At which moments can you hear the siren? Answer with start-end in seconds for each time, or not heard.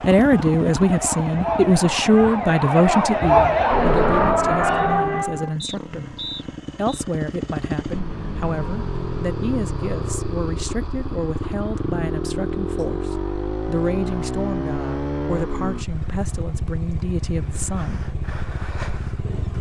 0.0-5.5.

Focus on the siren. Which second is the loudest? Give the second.
4 s.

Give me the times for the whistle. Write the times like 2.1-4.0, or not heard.
5.6-7.0.